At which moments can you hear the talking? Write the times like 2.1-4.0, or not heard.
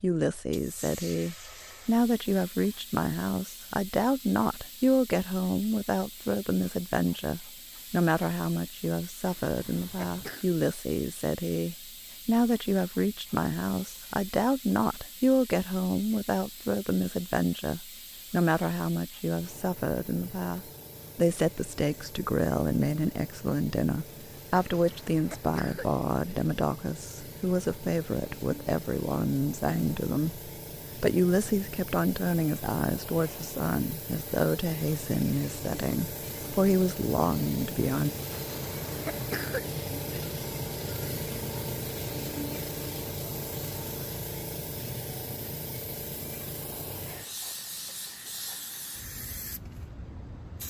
0.0-38.1.